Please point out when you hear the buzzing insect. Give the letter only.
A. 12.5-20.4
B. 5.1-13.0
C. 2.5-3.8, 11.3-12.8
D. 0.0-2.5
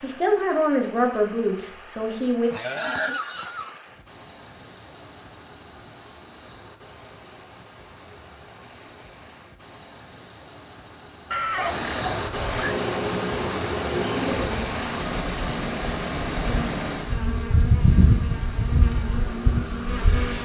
A.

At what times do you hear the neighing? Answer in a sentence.
The neighing can be heard from 2.5 to 3.8 s and from 11.3 to 12.8 s.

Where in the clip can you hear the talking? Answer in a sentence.
The talking can be heard from 0.0 to 2.5 s.